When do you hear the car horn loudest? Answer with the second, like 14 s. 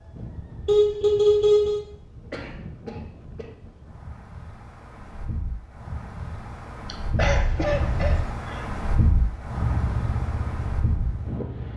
1 s.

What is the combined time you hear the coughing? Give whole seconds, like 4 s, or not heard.
3 s.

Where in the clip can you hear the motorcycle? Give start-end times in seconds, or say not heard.
9.5-11.7.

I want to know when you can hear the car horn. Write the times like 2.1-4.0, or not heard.
0.7-1.9, 7.2-8.3.